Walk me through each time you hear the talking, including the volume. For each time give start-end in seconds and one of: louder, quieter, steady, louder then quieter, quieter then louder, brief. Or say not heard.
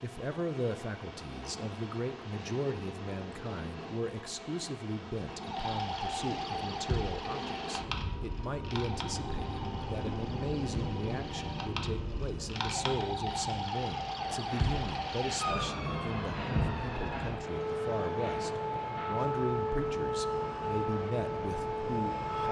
0.0-22.4 steady.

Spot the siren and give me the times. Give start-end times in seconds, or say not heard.
5.4-22.4.